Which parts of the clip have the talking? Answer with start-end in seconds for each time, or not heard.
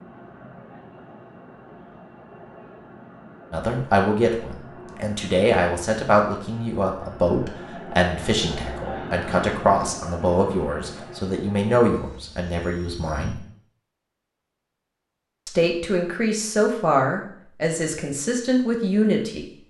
3.5-13.4, 15.4-19.4.